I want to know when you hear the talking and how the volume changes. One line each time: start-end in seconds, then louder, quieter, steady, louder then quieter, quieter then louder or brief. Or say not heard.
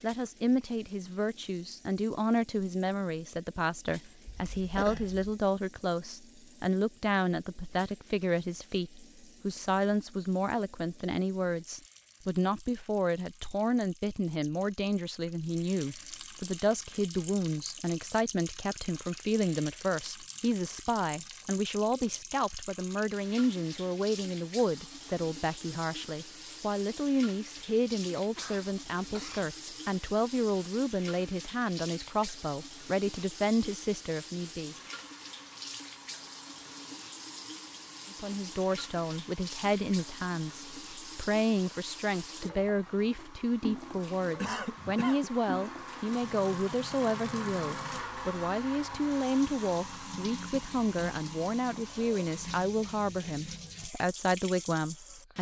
0.0-34.8 steady
38.1-55.3 steady.